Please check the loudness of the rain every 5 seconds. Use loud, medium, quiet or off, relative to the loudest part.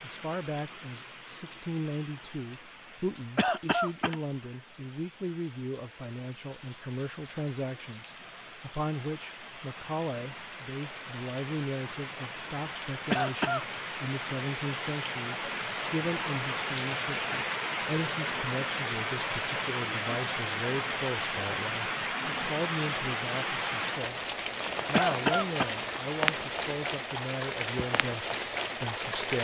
quiet, quiet, medium, loud, loud, loud.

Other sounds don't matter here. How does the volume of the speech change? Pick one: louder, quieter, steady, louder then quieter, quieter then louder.
steady.